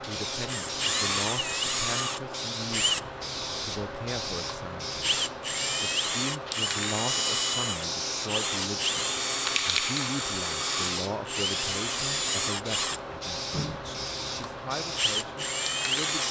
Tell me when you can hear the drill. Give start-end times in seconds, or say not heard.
0.3-16.2.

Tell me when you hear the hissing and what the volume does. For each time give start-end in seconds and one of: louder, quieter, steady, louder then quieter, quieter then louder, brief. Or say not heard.
0.0-16.2 steady.